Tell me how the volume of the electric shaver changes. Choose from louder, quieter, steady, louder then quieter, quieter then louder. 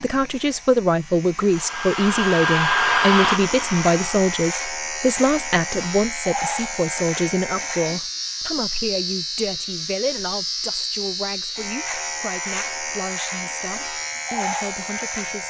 louder.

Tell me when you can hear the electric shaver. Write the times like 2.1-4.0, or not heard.
0.0-15.4.